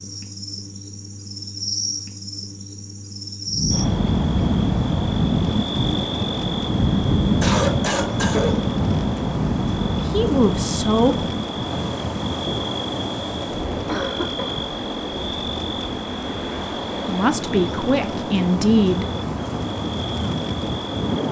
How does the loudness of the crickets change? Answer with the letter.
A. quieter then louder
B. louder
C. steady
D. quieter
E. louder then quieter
C.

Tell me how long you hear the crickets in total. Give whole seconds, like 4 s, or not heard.
21 s.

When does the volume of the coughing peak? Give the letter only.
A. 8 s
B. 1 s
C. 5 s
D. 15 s
A.